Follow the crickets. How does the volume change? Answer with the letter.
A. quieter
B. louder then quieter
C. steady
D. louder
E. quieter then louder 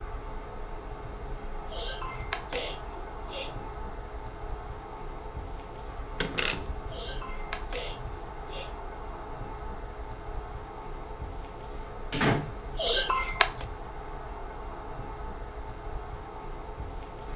C.